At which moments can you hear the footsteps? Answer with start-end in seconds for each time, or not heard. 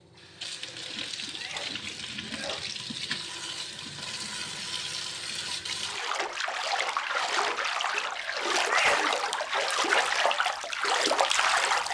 not heard.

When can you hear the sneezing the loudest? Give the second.
9 s.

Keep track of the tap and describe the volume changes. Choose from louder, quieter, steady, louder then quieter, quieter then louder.
louder.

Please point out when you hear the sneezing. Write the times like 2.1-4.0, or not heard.
1.4-2.8, 8.7-9.8.